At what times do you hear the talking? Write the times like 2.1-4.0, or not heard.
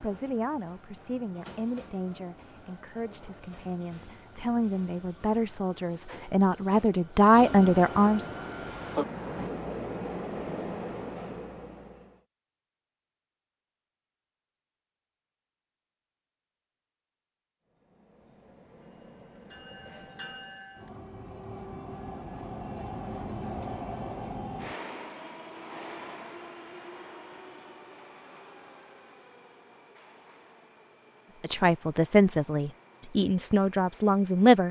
0.0-8.3, 31.4-34.6.